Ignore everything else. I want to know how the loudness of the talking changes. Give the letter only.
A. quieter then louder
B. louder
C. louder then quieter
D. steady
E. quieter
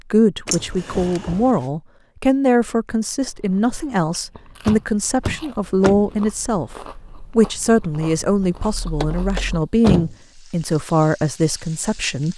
D.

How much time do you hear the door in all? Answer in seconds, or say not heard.
4 s.